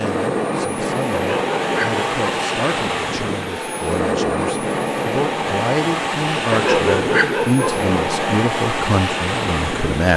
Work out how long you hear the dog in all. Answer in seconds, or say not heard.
3 s.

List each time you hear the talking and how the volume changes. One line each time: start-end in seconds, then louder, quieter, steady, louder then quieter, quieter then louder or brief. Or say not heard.
0.0-10.1 louder.